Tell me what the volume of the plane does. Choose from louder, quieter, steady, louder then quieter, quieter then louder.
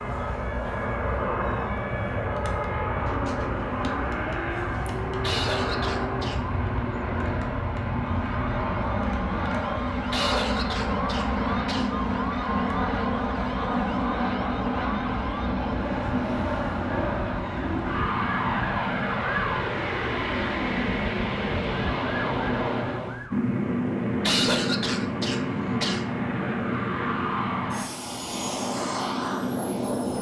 steady.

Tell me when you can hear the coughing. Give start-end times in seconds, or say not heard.
5.2-6.4, 10.1-11.9, 24.2-26.1.